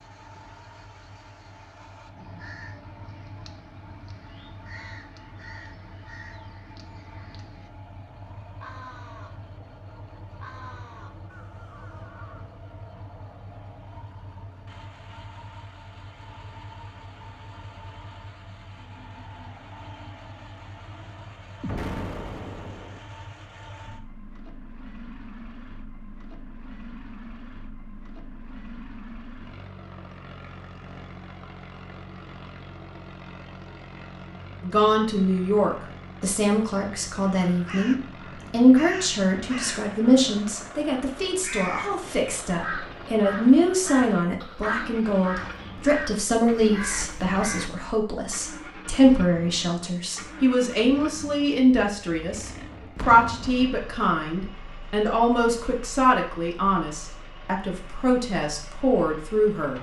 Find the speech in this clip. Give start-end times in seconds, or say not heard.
34.6-59.7.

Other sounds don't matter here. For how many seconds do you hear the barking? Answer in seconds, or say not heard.
not heard.